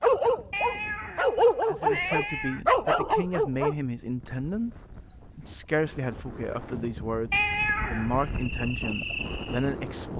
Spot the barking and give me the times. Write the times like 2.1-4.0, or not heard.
0.0-3.8.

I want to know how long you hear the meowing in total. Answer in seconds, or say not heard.
3 s.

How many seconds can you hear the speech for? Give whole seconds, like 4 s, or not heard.
8 s.